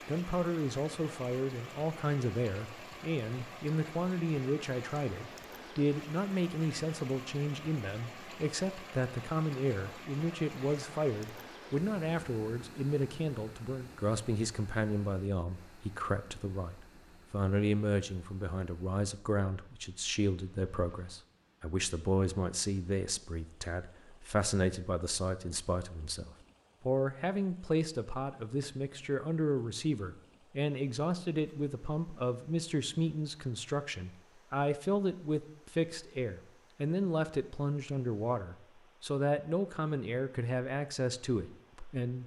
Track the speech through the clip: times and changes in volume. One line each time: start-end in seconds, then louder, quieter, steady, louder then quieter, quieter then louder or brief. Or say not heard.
0.1-42.2 steady.